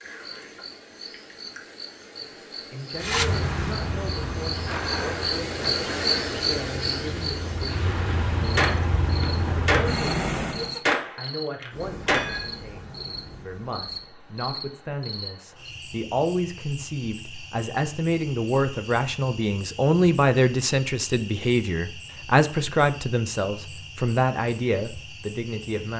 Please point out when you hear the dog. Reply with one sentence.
The dog can't be heard in this clip.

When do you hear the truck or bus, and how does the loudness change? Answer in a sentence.
You can hear the truck or bus from 3.0 to 10.8 s, getting quieter then louder.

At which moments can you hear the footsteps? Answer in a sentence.
You can't hear the footsteps here.